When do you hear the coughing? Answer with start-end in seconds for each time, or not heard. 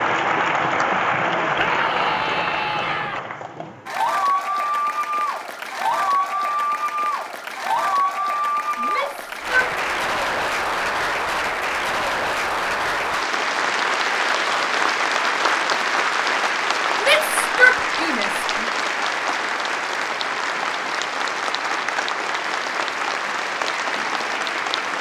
not heard.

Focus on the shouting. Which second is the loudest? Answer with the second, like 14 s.
18 s.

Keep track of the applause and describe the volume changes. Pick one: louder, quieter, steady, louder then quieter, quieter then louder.
steady.